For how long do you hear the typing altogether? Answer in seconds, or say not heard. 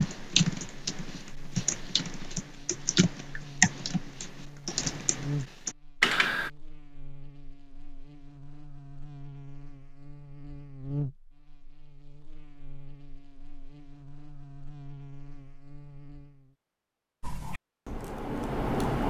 8 s.